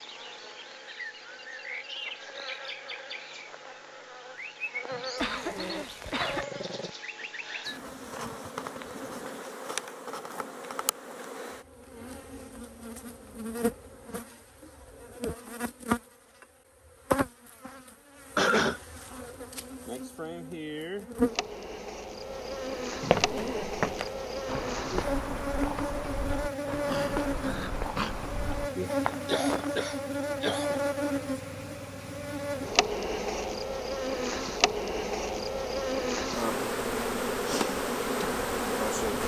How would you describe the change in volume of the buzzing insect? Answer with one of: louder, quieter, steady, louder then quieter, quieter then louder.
louder.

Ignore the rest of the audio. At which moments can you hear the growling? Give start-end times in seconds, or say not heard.
4.9-6.9, 23.0-23.7, 26.9-28.1.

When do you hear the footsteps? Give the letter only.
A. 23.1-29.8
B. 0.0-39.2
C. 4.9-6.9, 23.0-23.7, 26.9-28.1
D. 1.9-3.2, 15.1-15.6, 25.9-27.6
A.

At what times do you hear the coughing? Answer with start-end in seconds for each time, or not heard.
5.2-6.5, 18.4-18.8, 29.1-30.8.